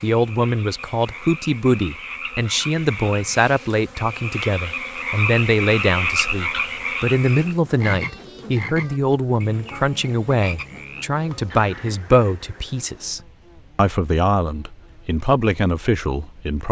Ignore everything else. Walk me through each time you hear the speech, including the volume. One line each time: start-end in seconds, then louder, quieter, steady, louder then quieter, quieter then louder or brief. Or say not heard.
0.0-16.6 steady.